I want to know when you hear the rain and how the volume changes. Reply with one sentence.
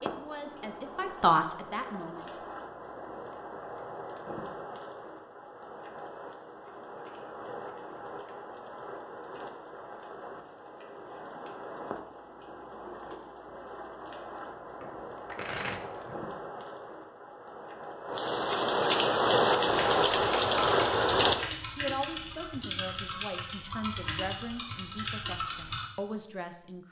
You can hear the rain from 0.0 to 21.5 s, getting louder.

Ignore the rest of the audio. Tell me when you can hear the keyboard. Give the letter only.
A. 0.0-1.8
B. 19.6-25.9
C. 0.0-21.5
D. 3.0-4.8
B.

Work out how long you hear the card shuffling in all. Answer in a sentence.
You can hear the card shuffling for 2 seconds altogether.